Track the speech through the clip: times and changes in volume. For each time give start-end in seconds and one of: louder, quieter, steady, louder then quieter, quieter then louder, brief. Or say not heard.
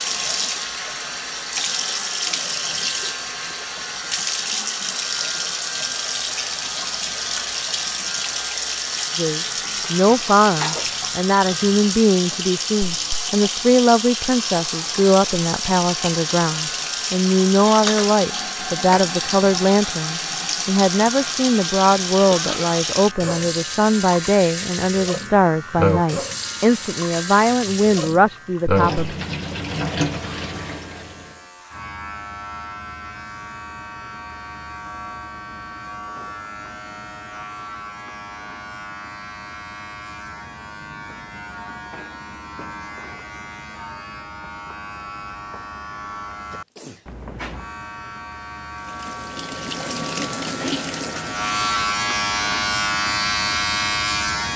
9.2-29.1 steady.